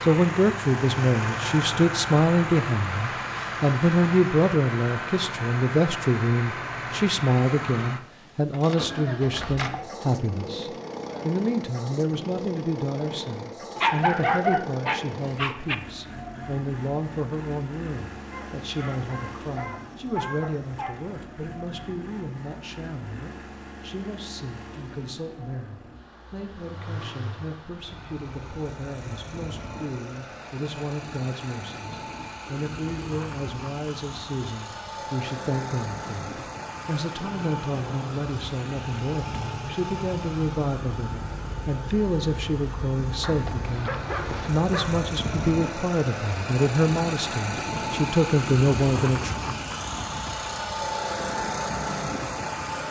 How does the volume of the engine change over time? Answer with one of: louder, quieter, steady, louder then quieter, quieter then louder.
quieter then louder.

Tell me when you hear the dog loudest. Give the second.
14 s.